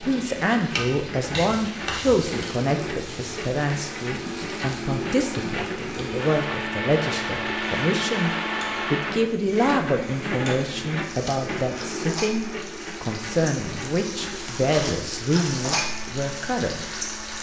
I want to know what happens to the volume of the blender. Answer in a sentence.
The volume of the blender goes up, then down.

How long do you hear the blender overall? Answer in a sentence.
The blender can be heard for 17 seconds in total.